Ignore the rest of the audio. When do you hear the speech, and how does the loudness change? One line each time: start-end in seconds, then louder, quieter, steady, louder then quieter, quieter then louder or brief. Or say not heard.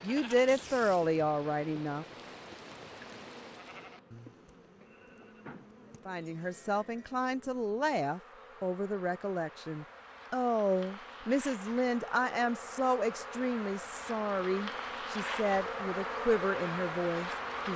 0.0-2.0 brief
6.0-17.7 steady.